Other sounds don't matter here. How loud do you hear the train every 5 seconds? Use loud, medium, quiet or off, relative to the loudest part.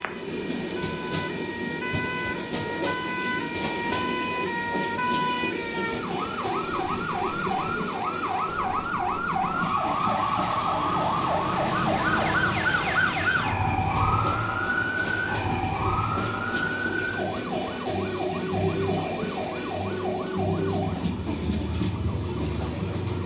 loud, loud, medium, loud, loud.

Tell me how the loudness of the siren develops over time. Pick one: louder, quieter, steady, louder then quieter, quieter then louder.
louder then quieter.